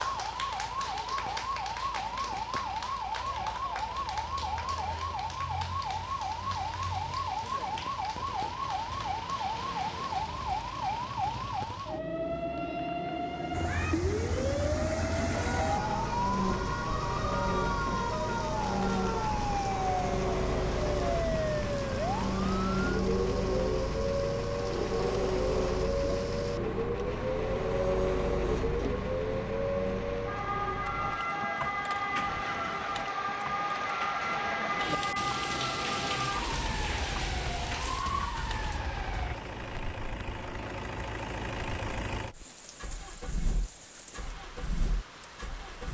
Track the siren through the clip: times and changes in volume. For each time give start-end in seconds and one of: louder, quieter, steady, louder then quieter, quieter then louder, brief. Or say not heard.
0.0-39.4 steady.